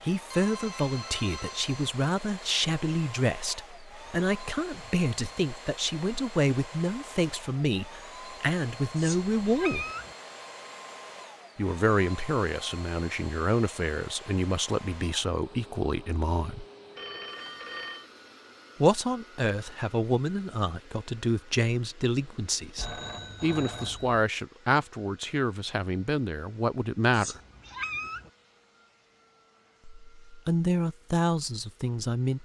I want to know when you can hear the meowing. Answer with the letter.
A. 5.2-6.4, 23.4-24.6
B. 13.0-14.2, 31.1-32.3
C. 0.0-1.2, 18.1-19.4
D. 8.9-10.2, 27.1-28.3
D.